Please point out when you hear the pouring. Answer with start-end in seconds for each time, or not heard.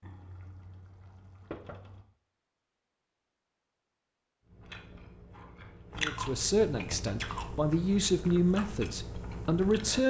0.0-2.0.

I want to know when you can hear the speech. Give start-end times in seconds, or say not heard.
6.0-10.0.